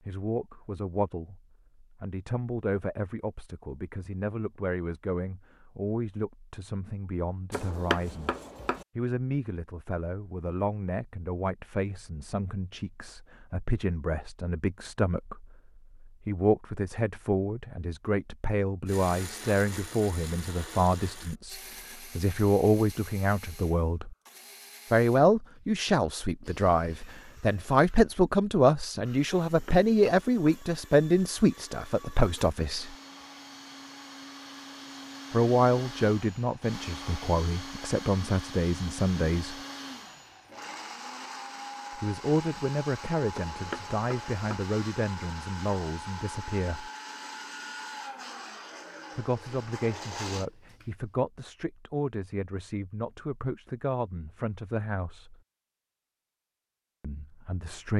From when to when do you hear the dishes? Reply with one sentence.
You can't hear the dishes here.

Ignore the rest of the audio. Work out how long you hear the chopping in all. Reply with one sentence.
You can hear the chopping for 4 seconds altogether.